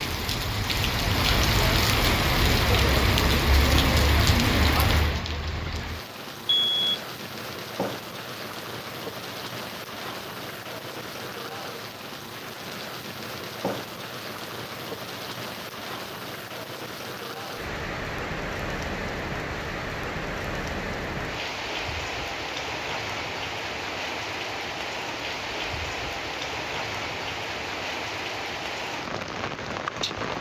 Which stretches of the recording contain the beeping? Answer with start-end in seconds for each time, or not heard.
6.5-7.0.